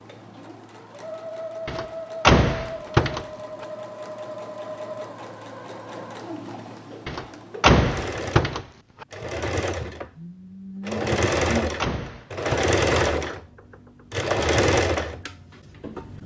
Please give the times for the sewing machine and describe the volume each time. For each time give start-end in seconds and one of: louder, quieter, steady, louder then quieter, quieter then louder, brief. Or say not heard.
0.0-16.2 louder.